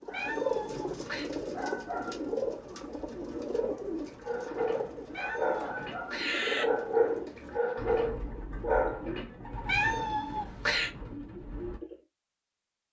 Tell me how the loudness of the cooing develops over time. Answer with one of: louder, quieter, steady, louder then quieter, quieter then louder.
quieter.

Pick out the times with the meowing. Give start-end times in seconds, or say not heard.
0.1-1.3, 5.1-6.7, 9.7-10.9.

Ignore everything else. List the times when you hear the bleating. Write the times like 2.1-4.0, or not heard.
not heard.